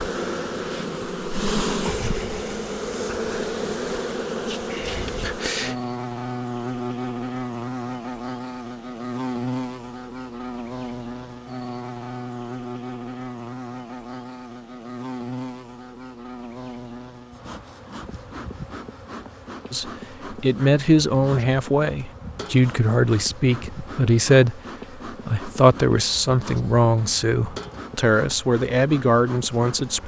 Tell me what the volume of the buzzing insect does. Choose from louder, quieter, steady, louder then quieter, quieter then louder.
quieter.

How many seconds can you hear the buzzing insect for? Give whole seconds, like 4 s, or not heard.
30 s.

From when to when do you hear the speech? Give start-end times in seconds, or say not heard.
19.7-30.0.